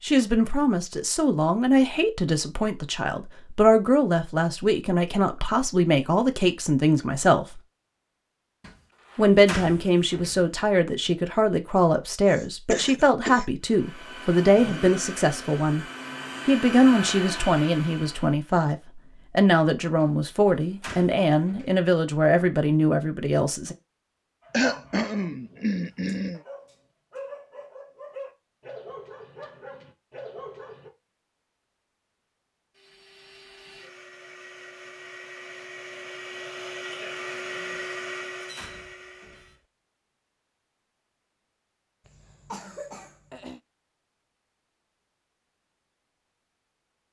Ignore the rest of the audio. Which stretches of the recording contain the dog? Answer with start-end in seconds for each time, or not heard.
24.4-30.9.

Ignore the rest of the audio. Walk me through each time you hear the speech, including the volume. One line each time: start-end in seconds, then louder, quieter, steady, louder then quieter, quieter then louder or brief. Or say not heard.
0.0-7.6 steady
9.2-15.8 steady
16.4-23.8 steady.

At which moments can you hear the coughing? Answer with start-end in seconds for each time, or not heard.
12.3-13.4, 24.5-26.4, 42.0-43.6.